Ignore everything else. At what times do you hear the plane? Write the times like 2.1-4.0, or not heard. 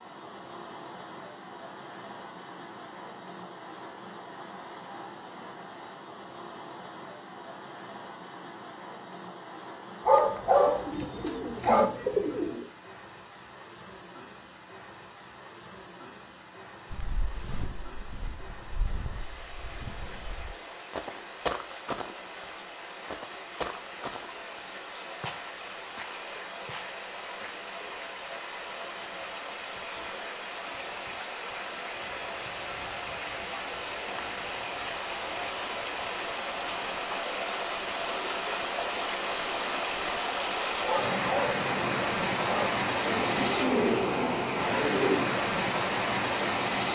not heard.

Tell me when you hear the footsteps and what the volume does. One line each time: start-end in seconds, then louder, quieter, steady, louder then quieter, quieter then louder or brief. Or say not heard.
16.9-27.6 louder then quieter.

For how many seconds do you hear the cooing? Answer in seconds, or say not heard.
4 s.